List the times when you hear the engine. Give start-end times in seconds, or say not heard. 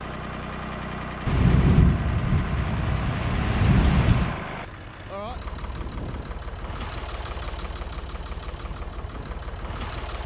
0.0-10.2.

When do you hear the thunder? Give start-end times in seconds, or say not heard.
1.2-4.4.